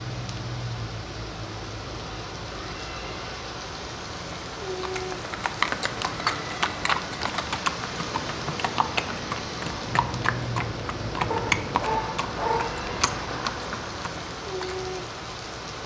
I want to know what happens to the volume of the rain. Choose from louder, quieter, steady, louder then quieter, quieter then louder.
steady.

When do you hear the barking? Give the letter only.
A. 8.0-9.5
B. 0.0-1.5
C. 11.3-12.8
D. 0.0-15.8
C.